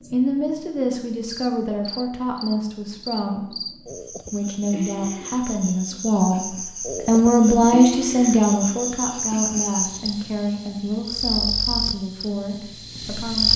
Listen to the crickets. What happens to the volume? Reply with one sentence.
The loudness of the crickets goes up.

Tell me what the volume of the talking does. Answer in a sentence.
The volume of the talking goes up, then down.